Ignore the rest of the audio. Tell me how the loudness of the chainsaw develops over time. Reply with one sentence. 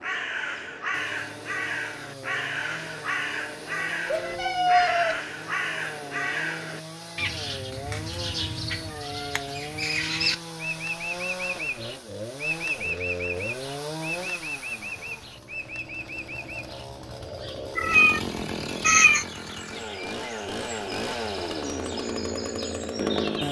The loudness of the chainsaw goes up.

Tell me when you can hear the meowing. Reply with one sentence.
You can hear the meowing from 4.0 to 5.2 s, from 8.9 to 9.4 s and from 17.8 to 19.2 s.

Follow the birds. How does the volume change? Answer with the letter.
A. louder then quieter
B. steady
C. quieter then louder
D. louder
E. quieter
E.